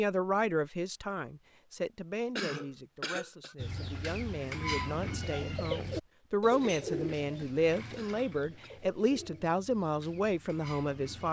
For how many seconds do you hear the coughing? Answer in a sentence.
The coughing can be heard for 2 seconds in total.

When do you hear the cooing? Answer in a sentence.
You can hear the cooing from 3.5 to 11.2 s.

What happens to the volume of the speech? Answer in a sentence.
The loudness of the speech goes down, then up.